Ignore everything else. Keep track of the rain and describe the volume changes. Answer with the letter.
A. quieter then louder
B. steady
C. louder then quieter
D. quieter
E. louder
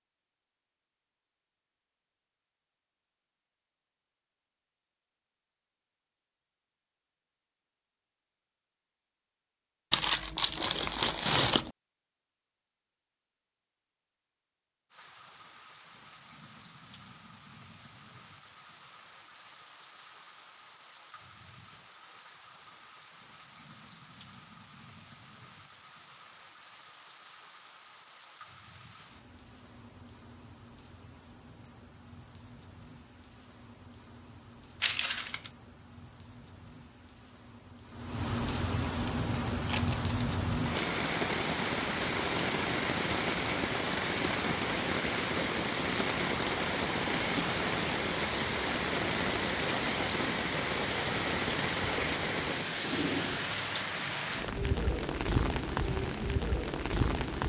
E.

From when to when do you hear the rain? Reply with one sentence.
You can hear the rain from 14.9 to 57.4 s.